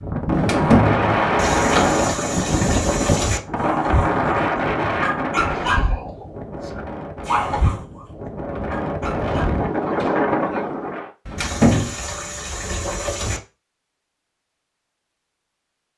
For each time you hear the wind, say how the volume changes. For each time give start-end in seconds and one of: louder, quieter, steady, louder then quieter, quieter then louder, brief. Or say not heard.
0.0-11.1 quieter then louder.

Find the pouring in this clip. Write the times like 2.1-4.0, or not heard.
1.4-3.4, 11.3-13.4.